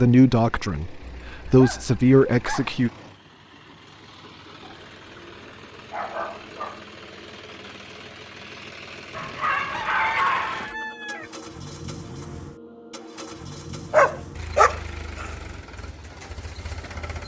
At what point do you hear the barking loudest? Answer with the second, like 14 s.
14 s.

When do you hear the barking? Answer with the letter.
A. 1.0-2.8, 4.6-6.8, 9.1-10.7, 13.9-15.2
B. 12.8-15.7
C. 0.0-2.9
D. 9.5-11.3
A.